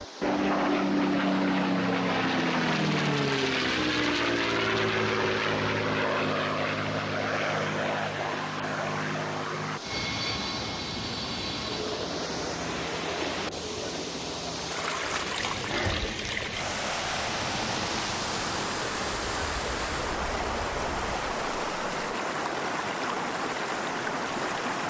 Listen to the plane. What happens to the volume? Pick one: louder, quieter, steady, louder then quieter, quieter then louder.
quieter.